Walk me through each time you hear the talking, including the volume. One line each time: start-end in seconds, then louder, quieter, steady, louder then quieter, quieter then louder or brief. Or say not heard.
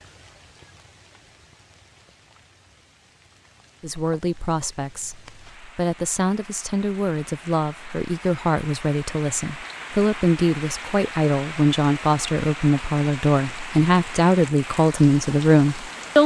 3.8-16.2 louder.